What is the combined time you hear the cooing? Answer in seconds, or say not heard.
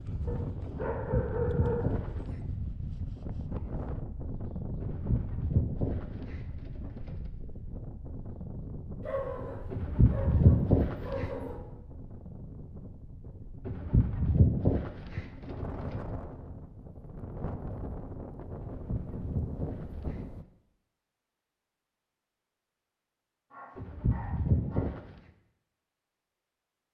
11 s.